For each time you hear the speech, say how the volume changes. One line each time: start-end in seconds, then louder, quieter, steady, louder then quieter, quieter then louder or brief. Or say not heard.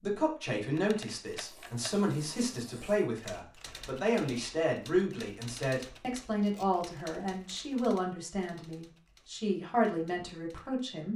0.0-11.1 steady.